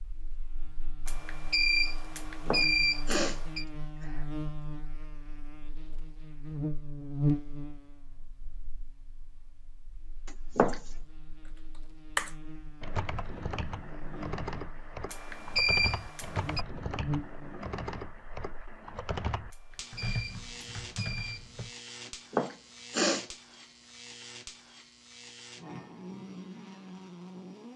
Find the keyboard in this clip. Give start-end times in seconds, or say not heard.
11.8-21.7.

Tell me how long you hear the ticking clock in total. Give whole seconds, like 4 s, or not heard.
not heard.